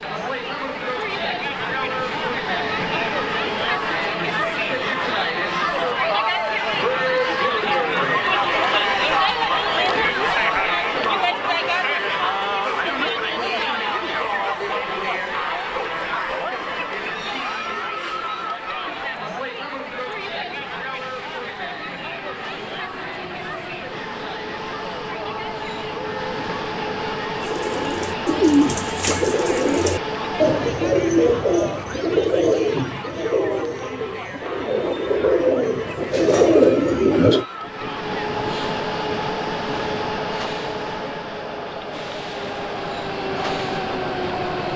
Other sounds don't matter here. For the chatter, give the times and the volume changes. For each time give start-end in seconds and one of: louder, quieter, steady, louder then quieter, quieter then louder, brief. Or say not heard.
0.0-44.7 quieter.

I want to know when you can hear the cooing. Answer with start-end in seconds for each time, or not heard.
27.4-37.5.